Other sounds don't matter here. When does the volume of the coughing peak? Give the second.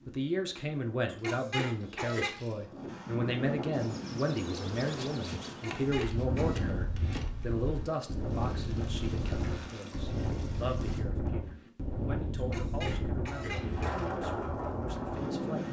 2 s.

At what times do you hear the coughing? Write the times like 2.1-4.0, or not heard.
1.1-2.4, 5.5-6.6, 12.3-14.1.